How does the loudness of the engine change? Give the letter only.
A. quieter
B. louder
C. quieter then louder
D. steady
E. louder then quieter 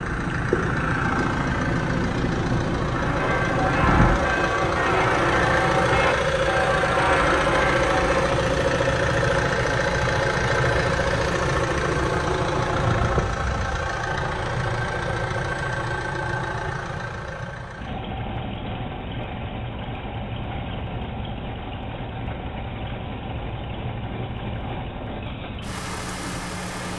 A.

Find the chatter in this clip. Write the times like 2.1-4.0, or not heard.
not heard.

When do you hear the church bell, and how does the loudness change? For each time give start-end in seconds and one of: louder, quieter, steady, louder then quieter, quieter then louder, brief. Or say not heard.
2.8-8.2 steady.